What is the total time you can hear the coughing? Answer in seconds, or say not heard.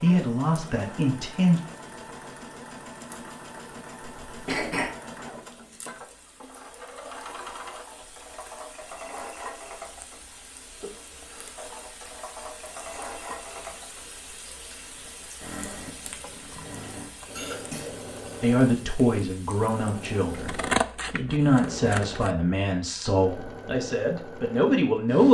2 s.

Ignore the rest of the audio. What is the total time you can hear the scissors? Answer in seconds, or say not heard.
2 s.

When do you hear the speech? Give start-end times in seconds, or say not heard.
0.0-1.6, 18.4-25.3.